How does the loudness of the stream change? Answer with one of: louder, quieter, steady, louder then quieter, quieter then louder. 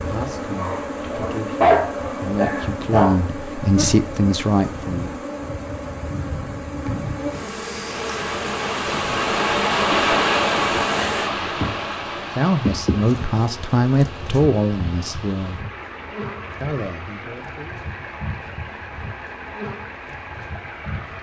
louder then quieter.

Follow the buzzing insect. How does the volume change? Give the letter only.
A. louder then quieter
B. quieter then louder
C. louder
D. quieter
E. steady
D.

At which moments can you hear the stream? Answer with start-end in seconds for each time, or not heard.
0.0-21.1.